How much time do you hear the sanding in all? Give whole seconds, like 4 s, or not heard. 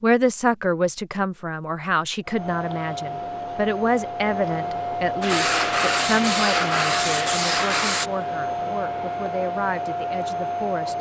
3 s.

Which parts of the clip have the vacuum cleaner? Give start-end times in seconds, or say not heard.
2.2-10.9.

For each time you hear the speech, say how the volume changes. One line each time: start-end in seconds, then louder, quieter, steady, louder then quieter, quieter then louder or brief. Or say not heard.
0.0-10.9 quieter.